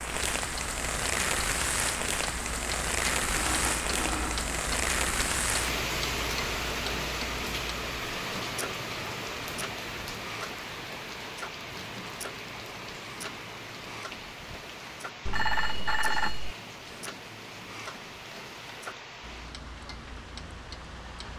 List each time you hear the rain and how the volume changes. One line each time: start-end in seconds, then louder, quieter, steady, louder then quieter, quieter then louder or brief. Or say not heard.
0.0-21.3 quieter.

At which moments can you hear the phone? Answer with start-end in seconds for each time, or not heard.
3.3-4.5, 15.2-16.6.